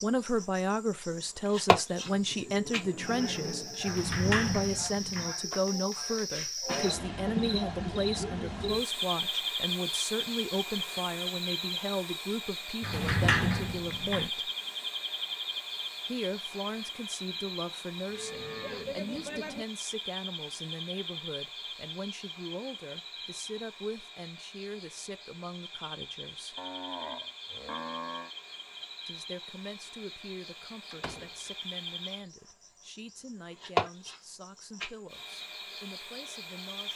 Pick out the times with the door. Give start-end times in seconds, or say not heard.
3.9-5.3, 12.8-14.3, 30.9-31.5.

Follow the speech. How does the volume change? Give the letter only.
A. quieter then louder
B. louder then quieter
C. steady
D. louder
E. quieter
E.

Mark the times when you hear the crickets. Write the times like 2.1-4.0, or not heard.
0.0-36.9.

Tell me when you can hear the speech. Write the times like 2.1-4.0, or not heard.
0.0-14.5, 16.1-26.6, 29.1-36.9.